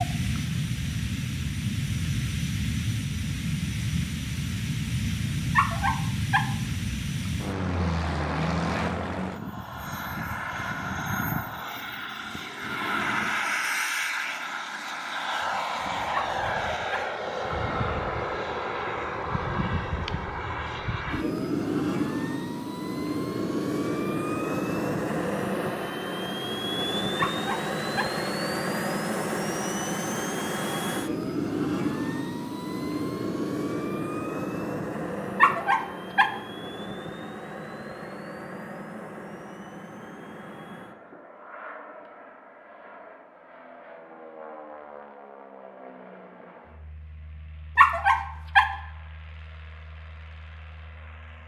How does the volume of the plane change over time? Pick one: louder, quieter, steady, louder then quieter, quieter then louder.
quieter.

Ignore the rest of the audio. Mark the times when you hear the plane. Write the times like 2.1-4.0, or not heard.
0.0-51.4.